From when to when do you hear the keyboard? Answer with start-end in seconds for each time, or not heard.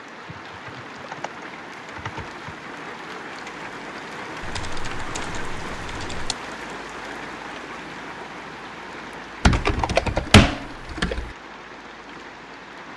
0.2-2.5, 4.4-6.3, 9.4-11.3.